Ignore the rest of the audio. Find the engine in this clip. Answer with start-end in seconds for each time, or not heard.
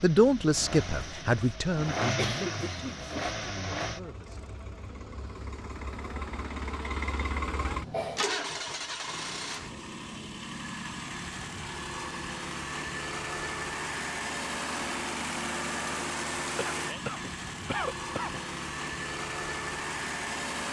0.0-20.6.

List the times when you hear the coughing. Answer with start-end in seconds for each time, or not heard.
2.1-3.4, 7.8-8.8, 16.6-18.4.